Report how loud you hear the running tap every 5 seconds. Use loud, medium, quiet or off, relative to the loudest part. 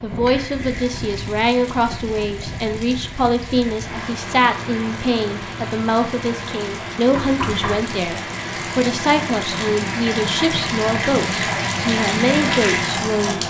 quiet, medium, loud.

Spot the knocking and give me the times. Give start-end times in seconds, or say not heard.
7.2-7.9.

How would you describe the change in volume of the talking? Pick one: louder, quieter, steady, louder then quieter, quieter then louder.
steady.